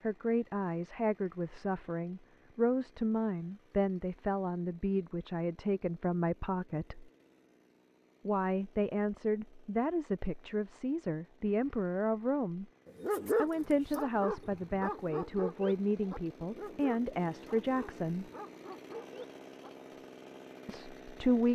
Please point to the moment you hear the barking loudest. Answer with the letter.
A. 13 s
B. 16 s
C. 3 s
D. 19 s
A.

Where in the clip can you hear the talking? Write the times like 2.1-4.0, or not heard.
0.0-7.1, 8.2-12.7, 13.3-18.2, 20.6-21.5.